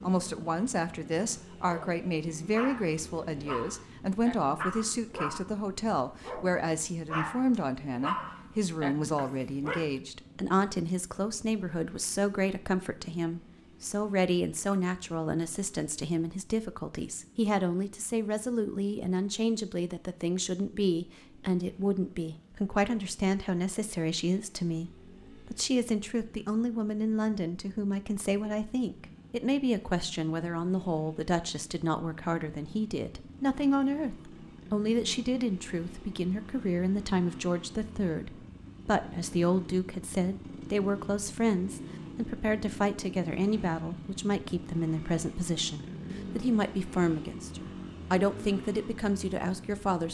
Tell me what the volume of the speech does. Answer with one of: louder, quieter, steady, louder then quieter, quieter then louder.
steady.